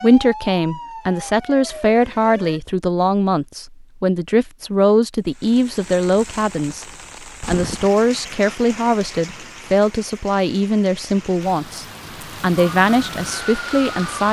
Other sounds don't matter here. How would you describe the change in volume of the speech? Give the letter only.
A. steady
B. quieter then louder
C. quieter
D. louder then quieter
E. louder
A.